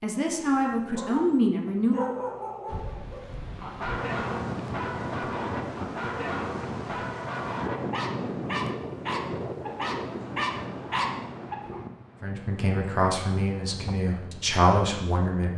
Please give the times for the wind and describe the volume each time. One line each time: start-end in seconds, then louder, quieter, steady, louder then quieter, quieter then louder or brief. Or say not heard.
2.6-15.5 quieter.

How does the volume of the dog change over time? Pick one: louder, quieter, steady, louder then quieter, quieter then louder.
louder.